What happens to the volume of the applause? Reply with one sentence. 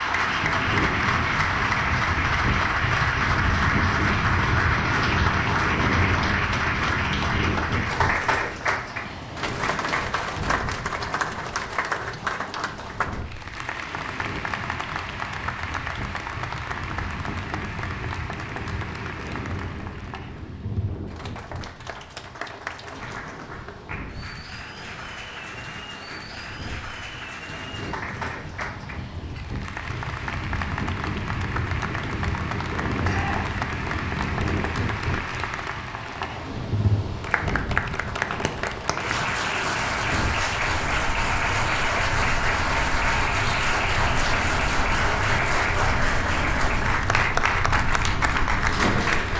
The loudness of the applause goes down, then up.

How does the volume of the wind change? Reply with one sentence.
The volume of the wind goes down, then up.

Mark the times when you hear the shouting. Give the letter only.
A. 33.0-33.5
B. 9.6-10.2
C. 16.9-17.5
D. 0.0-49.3
A.